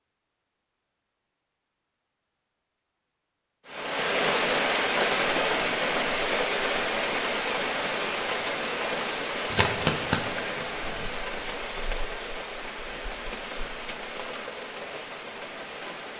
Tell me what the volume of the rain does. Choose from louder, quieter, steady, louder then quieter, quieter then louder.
quieter.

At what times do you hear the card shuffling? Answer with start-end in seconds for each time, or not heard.
9.5-11.1.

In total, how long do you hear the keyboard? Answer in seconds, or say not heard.
not heard.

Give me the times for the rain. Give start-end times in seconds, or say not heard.
3.6-16.1.